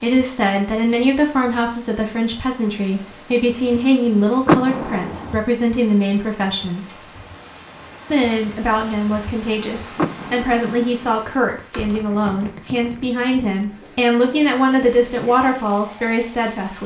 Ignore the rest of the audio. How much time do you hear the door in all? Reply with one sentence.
You can hear the door for 2 seconds altogether.